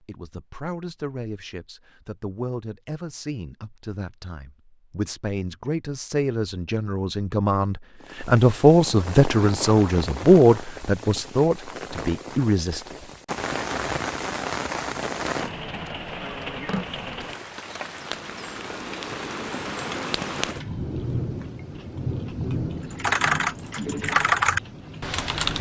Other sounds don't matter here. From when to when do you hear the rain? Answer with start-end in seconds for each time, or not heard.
8.0-25.5.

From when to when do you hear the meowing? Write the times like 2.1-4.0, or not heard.
not heard.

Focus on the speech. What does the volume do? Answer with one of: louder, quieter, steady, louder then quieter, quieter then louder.
louder.